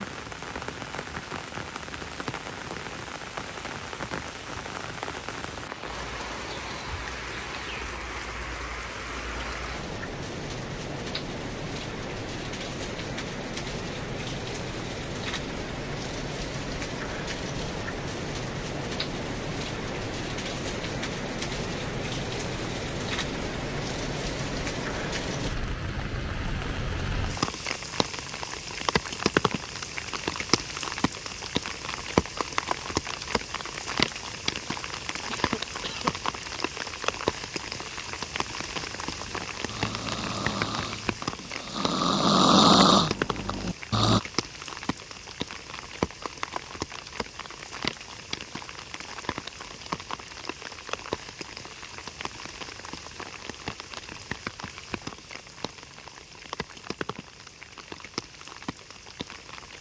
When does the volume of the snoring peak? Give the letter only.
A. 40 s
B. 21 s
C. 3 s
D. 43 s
D.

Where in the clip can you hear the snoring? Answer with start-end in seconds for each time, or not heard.
38.8-44.2.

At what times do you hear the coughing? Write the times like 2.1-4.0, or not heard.
35.2-36.1.